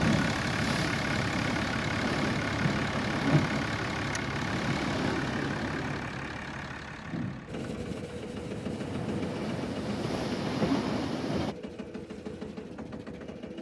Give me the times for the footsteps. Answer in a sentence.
You can't hear the footsteps here.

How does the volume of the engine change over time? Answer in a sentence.
The loudness of the engine goes down.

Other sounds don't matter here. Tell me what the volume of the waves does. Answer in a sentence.
The volume of the waves goes down, then up.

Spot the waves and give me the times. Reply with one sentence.
You can hear the waves from 0.0 to 11.6 s.